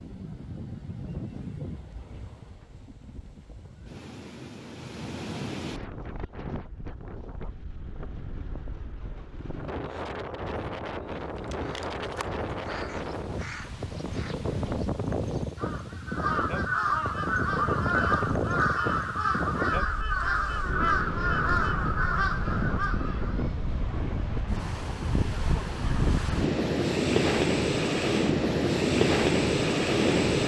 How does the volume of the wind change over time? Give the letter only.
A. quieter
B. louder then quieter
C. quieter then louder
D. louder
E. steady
D.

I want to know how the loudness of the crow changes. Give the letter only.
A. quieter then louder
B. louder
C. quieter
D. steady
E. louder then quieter
B.